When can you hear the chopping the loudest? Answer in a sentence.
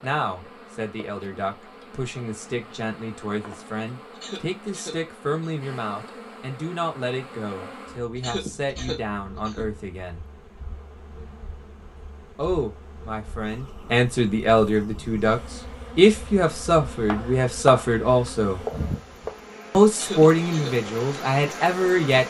The volume of the chopping peaks at 18 seconds.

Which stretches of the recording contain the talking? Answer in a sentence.
You can hear the talking from 0.0 to 10.2 s, from 12.3 to 18.6 s and from 19.7 to 22.2 s.